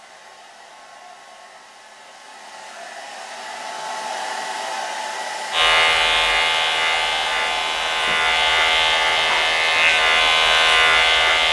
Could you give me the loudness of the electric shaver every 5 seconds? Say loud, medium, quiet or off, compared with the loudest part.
off, loud, loud.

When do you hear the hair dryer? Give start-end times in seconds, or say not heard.
0.0-11.4.